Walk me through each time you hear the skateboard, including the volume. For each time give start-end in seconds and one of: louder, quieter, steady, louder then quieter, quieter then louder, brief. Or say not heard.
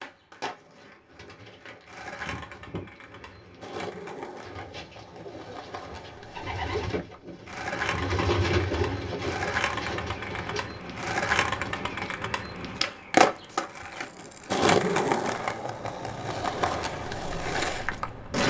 0.0-18.4 louder.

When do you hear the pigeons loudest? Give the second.
8 s.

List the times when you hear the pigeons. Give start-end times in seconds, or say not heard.
1.1-12.2.